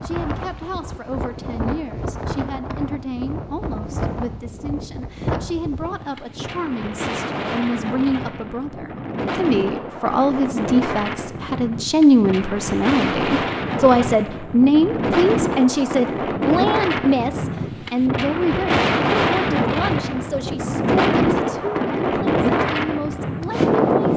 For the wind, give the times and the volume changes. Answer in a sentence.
You can hear the wind from 0.0 to 24.1 s, getting louder.